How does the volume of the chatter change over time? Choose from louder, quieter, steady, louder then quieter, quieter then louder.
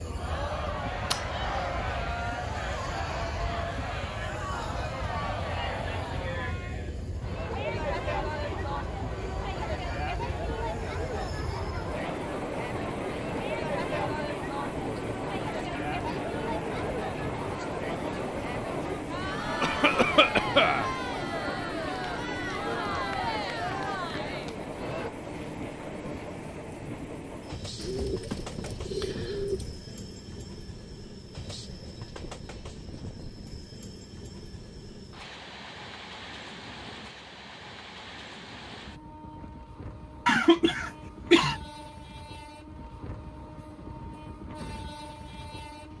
steady.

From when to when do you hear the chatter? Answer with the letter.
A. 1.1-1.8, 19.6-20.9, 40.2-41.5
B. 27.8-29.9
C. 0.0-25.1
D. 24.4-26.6
C.